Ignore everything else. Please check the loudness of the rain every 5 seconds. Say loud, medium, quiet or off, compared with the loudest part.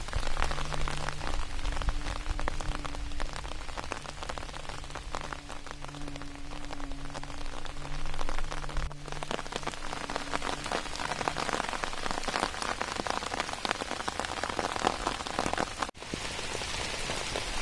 medium, medium, loud, loud.